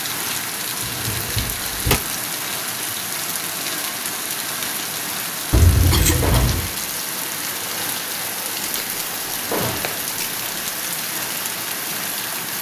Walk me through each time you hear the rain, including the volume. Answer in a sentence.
The rain can be heard from 0.0 to 12.5 s, at a steady volume.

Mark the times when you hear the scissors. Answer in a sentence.
The scissors can be heard from 0.8 to 1.4 s, from 5.5 to 6.7 s and from 8.7 to 10.7 s.